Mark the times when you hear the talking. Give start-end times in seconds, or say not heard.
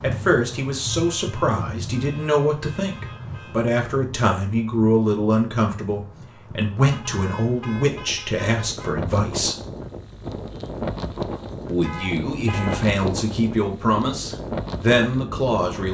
0.0-9.6, 11.7-15.8.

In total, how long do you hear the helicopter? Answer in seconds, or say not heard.
not heard.